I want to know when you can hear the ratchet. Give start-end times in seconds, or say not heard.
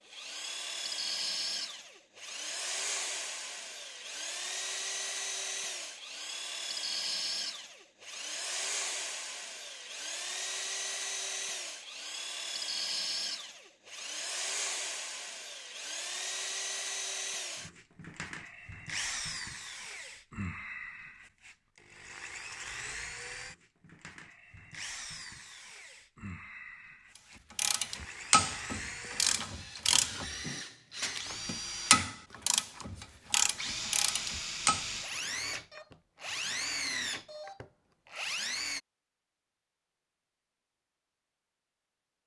27.6-34.9.